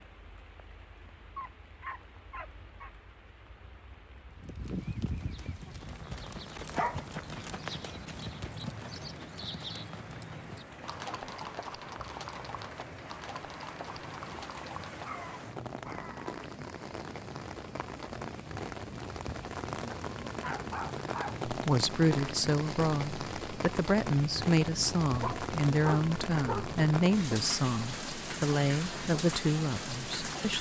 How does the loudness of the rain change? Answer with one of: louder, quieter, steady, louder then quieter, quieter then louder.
louder.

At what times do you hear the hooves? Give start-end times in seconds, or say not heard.
4.3-15.6.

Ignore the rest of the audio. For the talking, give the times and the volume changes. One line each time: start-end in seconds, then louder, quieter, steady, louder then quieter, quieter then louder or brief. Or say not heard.
21.4-30.5 steady.